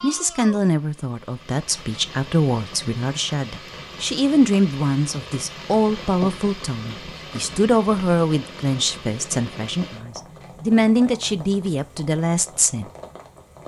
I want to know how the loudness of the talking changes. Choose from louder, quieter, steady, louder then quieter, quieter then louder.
steady.